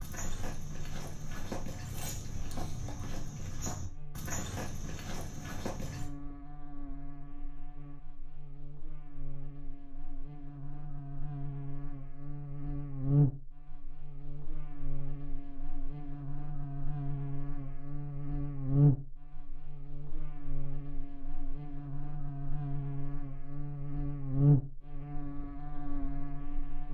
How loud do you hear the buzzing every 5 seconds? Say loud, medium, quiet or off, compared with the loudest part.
quiet, quiet, loud, loud, loud, medium.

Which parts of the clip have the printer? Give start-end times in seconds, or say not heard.
not heard.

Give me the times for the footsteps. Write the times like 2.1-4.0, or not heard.
0.0-6.1.